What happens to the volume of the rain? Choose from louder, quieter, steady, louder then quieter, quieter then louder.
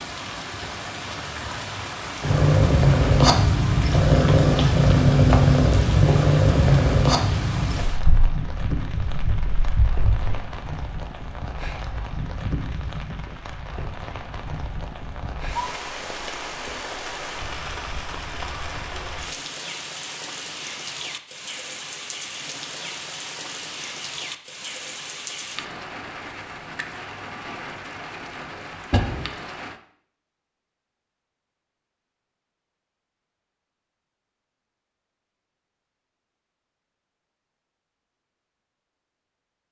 steady.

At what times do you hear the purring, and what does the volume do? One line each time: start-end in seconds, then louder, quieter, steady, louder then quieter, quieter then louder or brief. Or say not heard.
2.2-10.4 quieter.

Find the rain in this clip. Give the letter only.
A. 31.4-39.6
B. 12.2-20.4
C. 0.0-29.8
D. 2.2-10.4
C.